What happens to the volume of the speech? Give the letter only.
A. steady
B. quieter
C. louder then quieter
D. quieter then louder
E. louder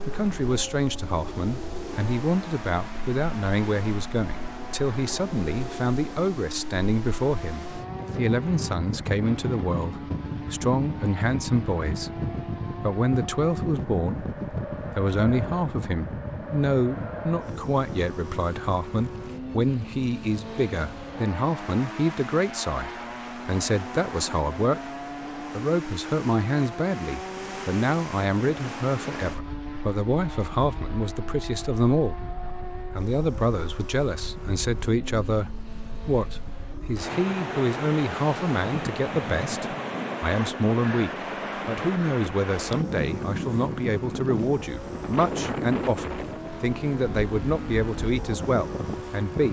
A.